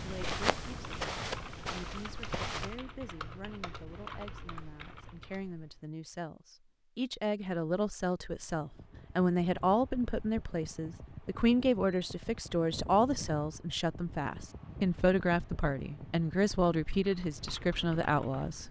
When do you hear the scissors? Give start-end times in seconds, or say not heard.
not heard.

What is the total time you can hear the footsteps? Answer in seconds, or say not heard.
3 s.